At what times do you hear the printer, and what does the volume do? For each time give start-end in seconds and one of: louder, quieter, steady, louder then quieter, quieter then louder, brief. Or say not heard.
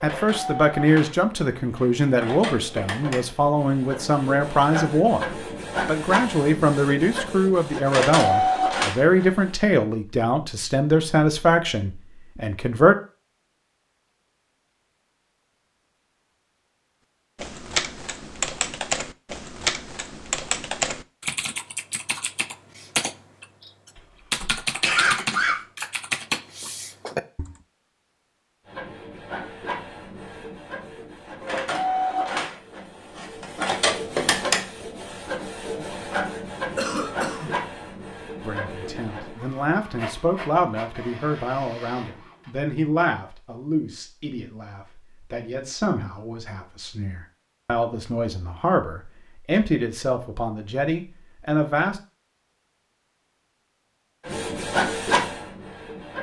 0.0-9.6 louder
28.6-42.5 louder then quieter
54.2-56.1 brief.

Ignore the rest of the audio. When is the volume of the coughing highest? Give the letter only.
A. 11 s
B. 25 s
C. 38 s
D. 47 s
B.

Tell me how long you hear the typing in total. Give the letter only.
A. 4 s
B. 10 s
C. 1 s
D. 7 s
B.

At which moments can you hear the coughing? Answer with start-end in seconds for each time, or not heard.
24.4-25.6, 36.8-37.5.